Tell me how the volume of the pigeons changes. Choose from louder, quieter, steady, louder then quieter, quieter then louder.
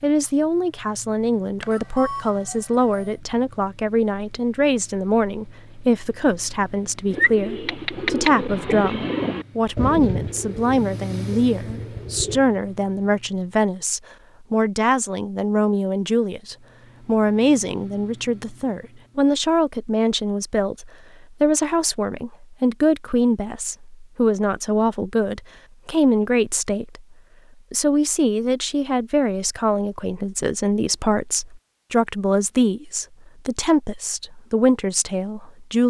quieter.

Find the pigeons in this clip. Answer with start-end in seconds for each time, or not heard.
7.1-12.4.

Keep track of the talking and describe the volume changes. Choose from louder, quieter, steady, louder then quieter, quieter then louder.
steady.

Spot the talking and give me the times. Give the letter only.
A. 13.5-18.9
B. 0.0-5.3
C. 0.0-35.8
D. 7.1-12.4
C.